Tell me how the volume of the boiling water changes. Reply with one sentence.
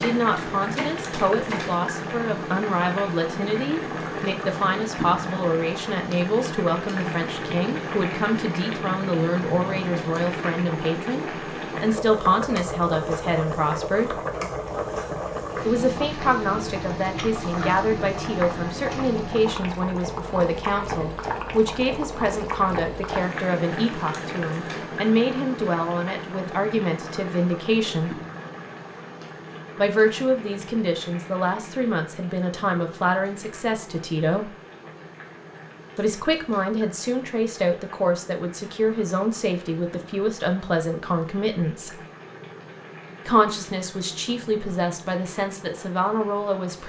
The volume of the boiling water goes down.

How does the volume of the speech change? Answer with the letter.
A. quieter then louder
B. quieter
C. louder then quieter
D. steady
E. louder
D.